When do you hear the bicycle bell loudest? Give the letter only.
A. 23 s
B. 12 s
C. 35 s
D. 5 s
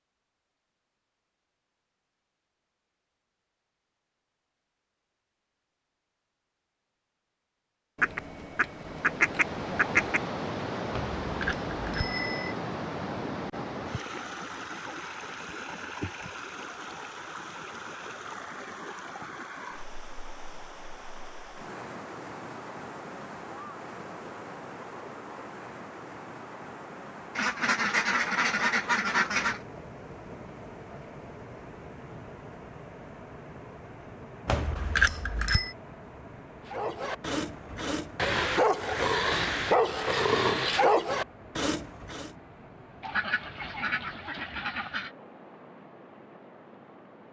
C.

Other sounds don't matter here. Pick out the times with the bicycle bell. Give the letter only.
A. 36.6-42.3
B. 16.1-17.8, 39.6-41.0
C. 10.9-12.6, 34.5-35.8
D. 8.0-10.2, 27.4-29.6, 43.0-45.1
C.